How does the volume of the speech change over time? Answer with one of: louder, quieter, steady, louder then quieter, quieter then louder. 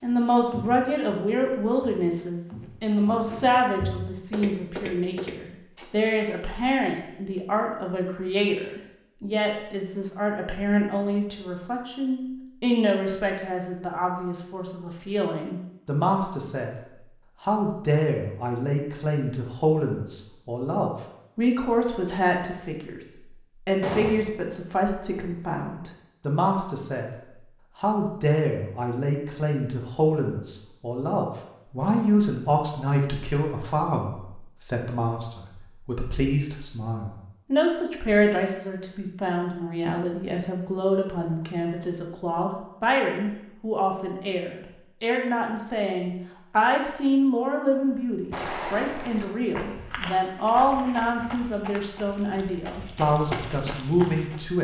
steady.